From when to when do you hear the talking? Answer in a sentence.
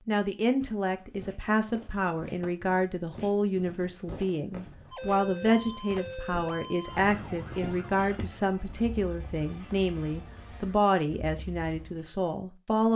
The talking can be heard from 0.1 to 12.9 s.